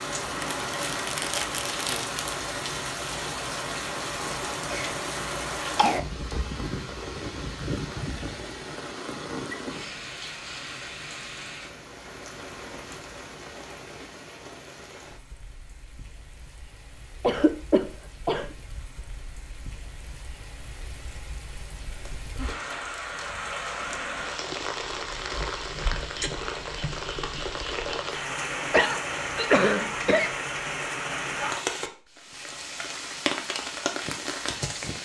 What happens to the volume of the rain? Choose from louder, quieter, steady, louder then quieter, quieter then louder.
quieter then louder.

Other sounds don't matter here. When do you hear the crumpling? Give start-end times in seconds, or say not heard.
0.4-2.4, 22.0-24.1.